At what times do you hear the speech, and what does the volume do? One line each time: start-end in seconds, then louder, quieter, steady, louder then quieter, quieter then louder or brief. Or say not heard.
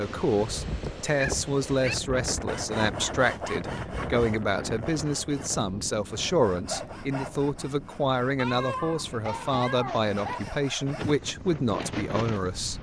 0.0-12.7 steady.